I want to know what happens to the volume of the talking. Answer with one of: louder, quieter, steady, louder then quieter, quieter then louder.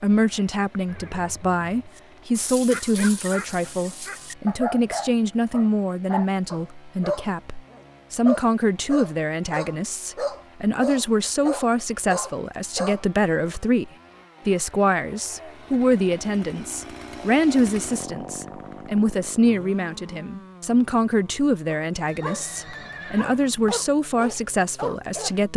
steady.